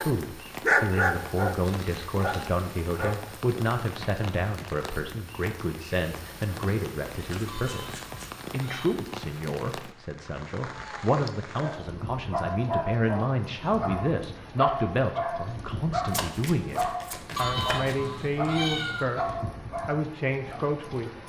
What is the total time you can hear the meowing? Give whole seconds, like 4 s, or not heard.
3 s.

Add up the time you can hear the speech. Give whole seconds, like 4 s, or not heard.
21 s.